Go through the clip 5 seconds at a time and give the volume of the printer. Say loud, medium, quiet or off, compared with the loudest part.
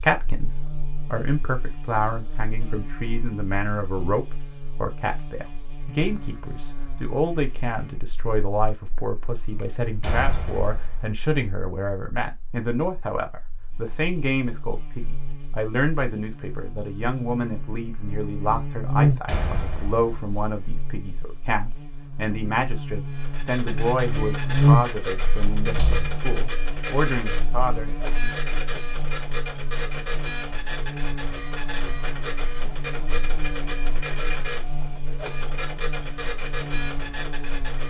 off, off, off, off, loud, loud, loud, loud.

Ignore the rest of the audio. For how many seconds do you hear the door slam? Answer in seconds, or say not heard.
3 s.